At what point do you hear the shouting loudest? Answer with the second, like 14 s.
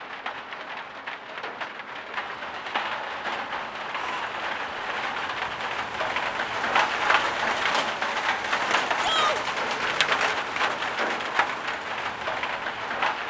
9 s.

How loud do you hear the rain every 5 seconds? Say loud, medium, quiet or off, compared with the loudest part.
medium, loud, loud.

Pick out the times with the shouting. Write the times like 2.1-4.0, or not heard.
3.9-4.3, 9.0-9.4.